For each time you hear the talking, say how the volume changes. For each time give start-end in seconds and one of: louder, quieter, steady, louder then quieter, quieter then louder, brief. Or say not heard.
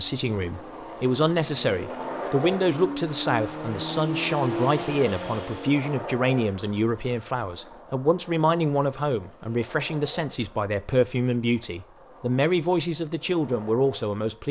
0.0-14.4 steady.